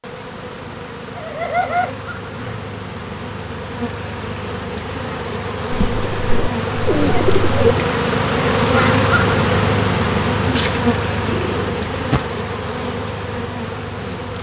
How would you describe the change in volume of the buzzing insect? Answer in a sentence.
The volume of the buzzing insect goes up, then down.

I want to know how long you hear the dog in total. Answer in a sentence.
You can't hear the dog here.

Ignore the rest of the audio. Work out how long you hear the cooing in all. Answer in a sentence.
You can hear the cooing for 6 seconds altogether.